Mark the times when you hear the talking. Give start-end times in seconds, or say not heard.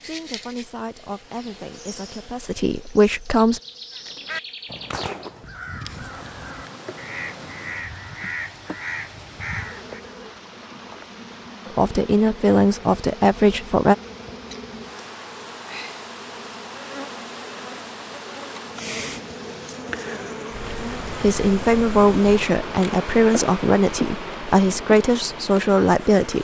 0.0-3.6, 11.7-13.9, 21.2-26.3.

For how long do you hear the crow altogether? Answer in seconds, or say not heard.
6 s.